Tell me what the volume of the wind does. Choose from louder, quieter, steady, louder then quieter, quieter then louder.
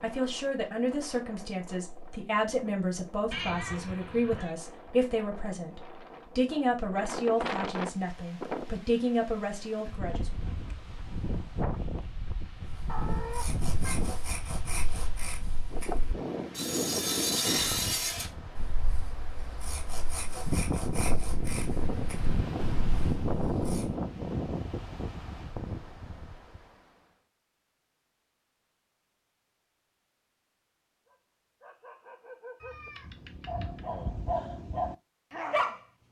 louder.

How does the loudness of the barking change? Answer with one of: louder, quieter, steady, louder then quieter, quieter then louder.
louder.